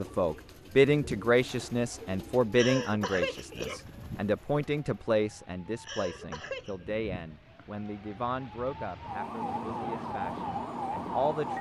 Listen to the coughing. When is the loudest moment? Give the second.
3 s.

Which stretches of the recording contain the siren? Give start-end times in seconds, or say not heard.
0.0-11.5.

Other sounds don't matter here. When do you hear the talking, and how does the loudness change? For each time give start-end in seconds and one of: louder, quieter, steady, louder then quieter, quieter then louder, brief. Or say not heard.
0.0-11.5 quieter.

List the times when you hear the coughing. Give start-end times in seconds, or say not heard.
2.5-4.0, 5.8-6.8.